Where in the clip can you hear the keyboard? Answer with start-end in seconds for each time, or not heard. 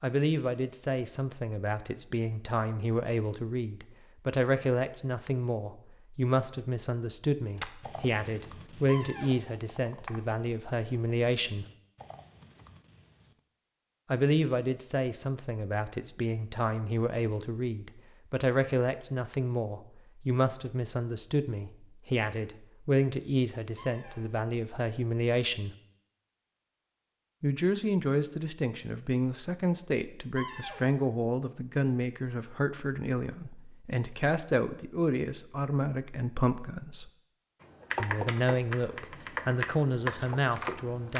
7.5-13.4, 37.6-41.1.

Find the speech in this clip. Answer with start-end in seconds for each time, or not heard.
0.0-11.7, 14.1-25.8, 27.4-37.1, 38.0-41.1.